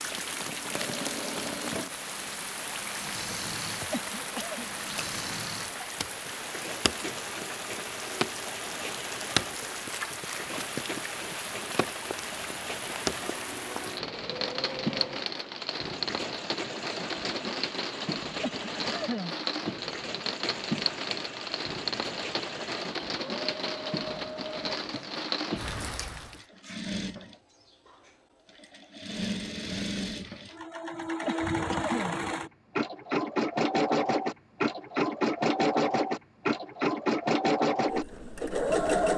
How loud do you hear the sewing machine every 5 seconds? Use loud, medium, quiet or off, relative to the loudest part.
quiet, quiet, quiet, quiet, quiet, medium, loud, loud.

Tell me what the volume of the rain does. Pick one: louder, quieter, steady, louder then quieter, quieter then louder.
steady.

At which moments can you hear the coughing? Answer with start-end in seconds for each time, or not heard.
3.9-4.7, 18.4-19.4, 31.2-32.2.